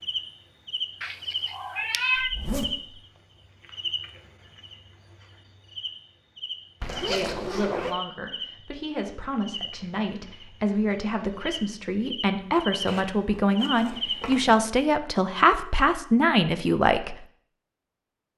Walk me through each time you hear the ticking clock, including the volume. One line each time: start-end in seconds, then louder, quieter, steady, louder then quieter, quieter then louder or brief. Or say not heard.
not heard.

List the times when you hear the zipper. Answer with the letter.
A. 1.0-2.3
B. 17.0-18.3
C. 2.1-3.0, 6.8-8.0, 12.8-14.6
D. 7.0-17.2
C.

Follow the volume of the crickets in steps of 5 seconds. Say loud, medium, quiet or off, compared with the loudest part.
loud, medium, loud, off.